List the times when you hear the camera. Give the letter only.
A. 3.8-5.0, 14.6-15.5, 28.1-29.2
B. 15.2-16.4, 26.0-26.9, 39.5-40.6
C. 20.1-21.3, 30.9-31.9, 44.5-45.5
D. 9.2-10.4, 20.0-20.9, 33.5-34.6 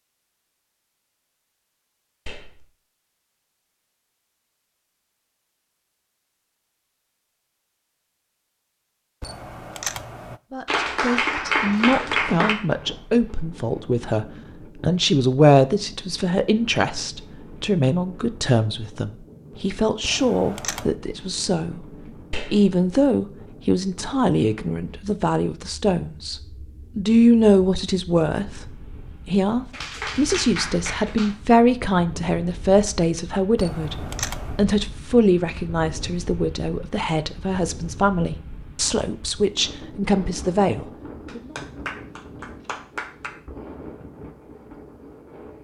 D.